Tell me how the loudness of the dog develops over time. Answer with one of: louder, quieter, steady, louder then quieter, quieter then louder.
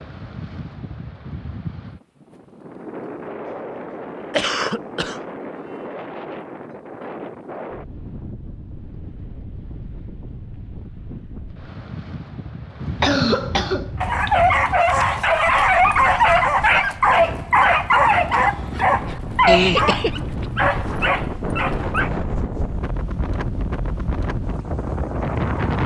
quieter.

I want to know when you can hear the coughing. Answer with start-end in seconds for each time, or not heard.
4.3-5.2, 13.0-14.3, 19.4-20.4.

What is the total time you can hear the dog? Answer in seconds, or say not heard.
8 s.